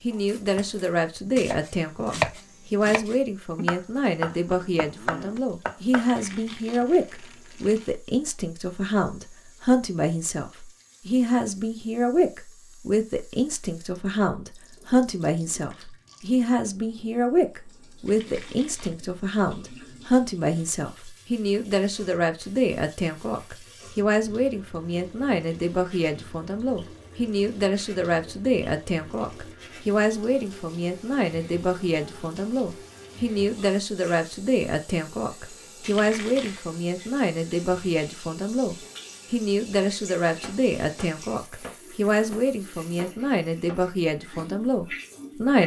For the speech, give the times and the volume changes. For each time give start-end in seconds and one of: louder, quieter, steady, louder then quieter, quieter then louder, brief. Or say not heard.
0.0-45.6 steady.